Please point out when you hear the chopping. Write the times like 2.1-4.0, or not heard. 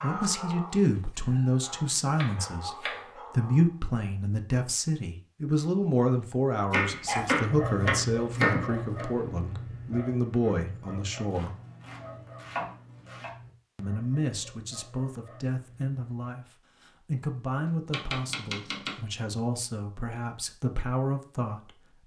2.1-3.0, 6.7-9.1, 11.3-13.3, 17.9-18.9.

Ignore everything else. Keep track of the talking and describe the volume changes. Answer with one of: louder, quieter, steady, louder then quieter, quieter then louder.
quieter.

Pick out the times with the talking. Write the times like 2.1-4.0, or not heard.
0.0-11.6, 13.8-21.8.